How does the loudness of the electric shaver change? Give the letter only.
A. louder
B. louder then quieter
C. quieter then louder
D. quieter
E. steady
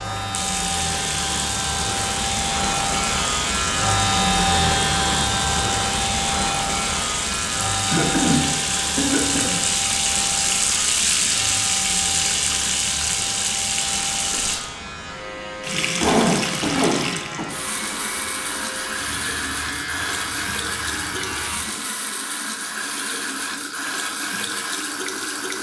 D.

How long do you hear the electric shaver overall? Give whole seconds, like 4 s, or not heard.
22 s.